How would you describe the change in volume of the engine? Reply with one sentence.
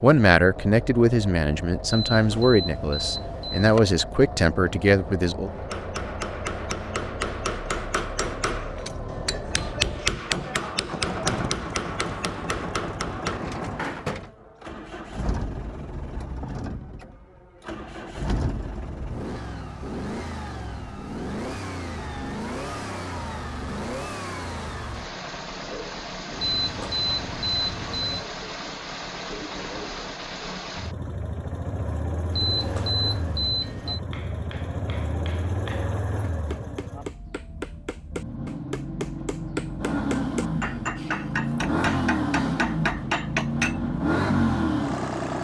The loudness of the engine goes up.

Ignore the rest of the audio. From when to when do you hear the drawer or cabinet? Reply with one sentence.
You can hear the drawer or cabinet from 13.2 to 14.3 s.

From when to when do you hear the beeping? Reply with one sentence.
The beeping can be heard from 1.9 to 3.8 s, from 26.4 to 28.2 s and from 32.3 to 34.0 s.